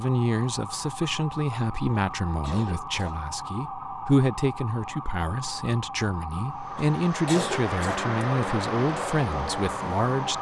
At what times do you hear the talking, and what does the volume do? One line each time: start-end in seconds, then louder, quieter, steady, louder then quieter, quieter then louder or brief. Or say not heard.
0.0-10.3 steady.